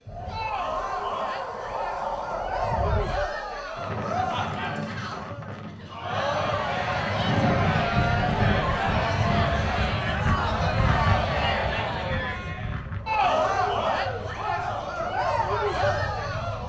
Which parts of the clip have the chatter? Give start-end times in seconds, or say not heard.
0.1-16.6.